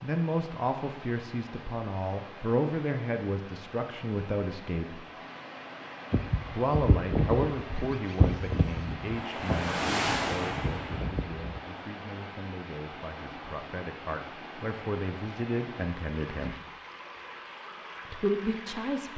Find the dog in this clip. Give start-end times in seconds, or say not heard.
not heard.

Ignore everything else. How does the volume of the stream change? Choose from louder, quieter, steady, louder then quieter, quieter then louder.
louder then quieter.